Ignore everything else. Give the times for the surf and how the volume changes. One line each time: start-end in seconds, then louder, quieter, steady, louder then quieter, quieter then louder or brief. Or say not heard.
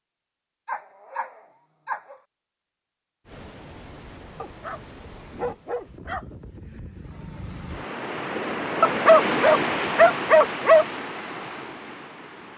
3.2-12.5 louder then quieter.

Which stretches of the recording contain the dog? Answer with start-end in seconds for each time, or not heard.
0.7-2.1, 4.3-6.2, 8.8-10.8.